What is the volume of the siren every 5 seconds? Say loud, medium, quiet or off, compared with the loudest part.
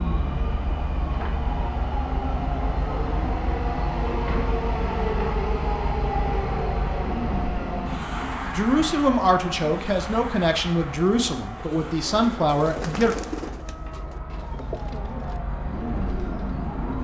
loud, loud, medium, loud.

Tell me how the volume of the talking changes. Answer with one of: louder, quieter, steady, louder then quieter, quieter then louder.
quieter then louder.